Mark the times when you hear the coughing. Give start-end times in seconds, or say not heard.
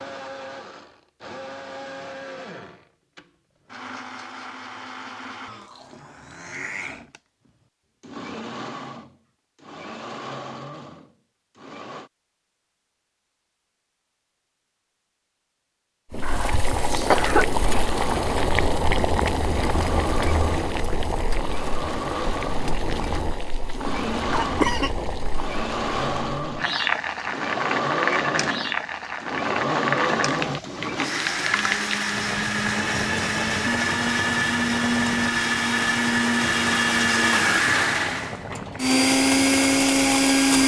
16.2-17.5, 24.3-24.9.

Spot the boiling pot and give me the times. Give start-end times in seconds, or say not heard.
16.1-40.6.